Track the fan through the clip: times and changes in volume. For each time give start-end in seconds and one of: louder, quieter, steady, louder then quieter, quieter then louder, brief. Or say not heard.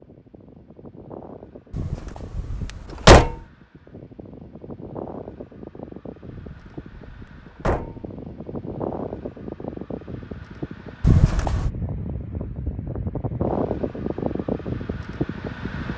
0.0-15.9 louder.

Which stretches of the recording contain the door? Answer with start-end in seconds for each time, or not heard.
1.7-3.4, 6.3-8.1, 11.0-11.7.